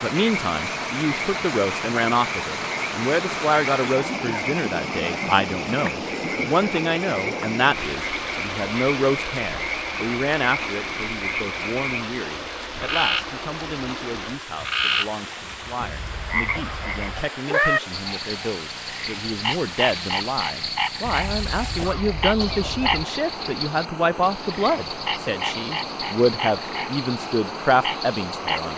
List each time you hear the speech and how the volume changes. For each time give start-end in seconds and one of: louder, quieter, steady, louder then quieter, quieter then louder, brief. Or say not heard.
0.0-28.7 quieter then louder.